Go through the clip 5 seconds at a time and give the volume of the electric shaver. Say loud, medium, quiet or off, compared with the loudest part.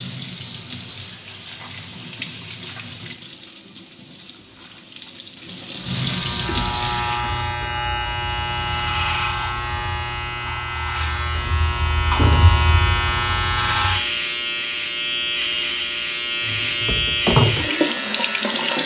off, loud, loud, loud.